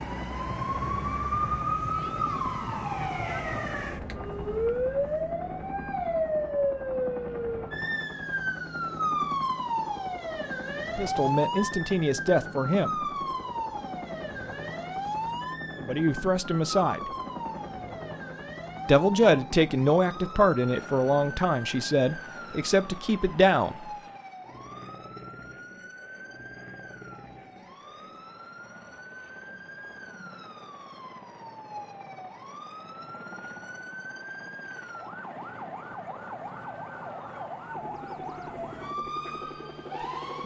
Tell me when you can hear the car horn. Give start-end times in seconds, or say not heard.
not heard.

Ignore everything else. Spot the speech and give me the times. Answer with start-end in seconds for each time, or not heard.
10.9-13.0, 15.8-17.1, 18.9-23.9.